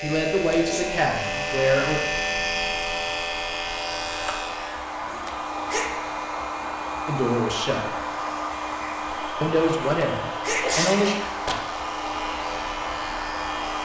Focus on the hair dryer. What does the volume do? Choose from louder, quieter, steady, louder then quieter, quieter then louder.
louder.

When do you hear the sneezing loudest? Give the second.
11 s.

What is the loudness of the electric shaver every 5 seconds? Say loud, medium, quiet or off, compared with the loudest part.
loud, off, medium.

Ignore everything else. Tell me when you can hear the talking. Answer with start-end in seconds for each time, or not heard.
0.0-2.0, 7.0-7.9, 9.4-11.1.